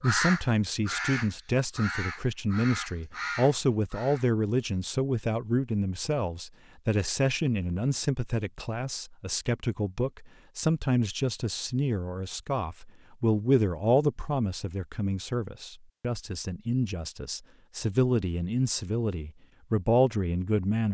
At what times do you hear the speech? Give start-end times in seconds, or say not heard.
0.0-20.8.